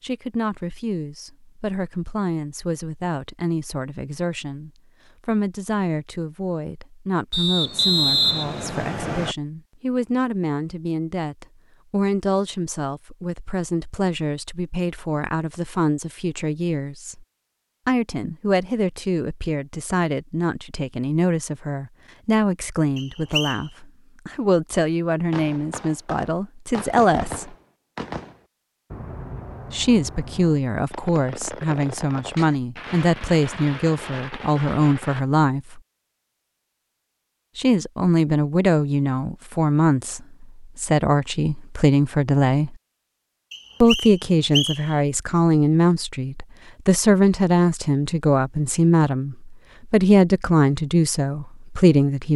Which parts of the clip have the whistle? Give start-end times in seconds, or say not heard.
7.3-9.3, 22.9-23.6, 43.5-45.0.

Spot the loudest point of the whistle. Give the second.
8 s.